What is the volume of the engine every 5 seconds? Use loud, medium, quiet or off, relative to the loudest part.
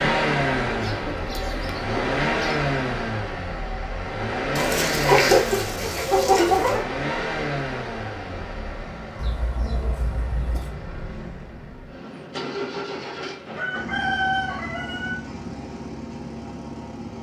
loud, medium, medium, medium.